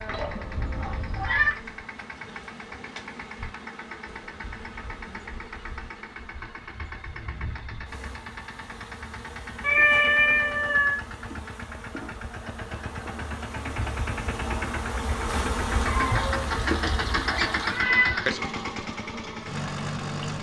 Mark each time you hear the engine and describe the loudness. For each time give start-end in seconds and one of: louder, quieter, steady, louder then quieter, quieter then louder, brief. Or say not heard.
0.0-20.3 louder.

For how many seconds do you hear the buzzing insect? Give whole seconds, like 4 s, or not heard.
20 s.